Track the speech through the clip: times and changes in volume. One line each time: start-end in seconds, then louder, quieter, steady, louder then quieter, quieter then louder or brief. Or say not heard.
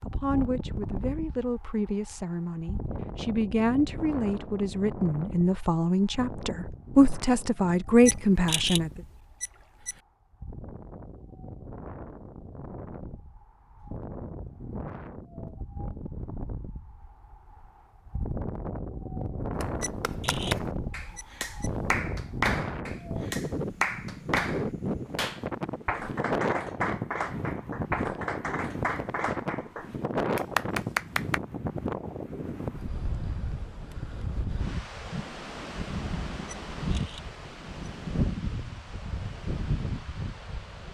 0.1-9.0 louder.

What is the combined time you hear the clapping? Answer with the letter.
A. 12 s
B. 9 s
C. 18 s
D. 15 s
A.